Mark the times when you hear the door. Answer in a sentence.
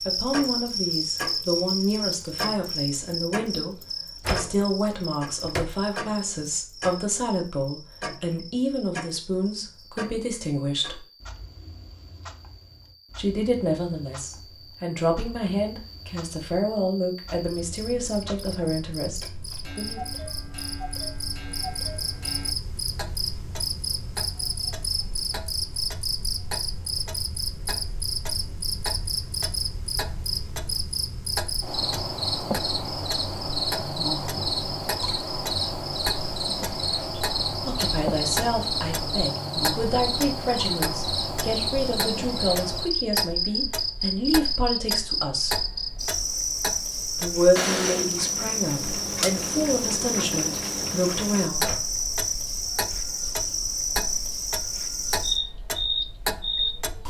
You can hear the door from 4.2 to 5.8 s and from 51.6 to 52.0 s.